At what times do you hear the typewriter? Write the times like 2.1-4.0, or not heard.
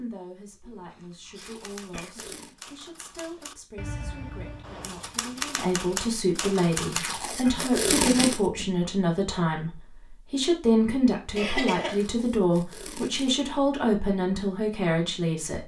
1.4-7.0.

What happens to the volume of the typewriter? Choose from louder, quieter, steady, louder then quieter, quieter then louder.
louder.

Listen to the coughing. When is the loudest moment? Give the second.
12 s.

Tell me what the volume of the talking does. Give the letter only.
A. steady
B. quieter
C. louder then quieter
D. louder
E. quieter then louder
D.